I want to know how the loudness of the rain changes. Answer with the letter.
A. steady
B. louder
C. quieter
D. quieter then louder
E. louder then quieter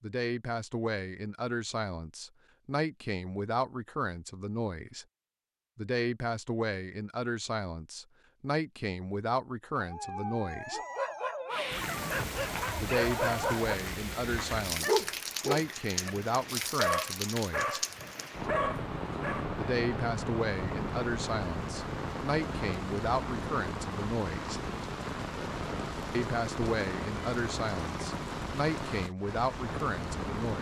A.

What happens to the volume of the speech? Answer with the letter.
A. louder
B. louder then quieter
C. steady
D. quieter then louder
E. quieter
C.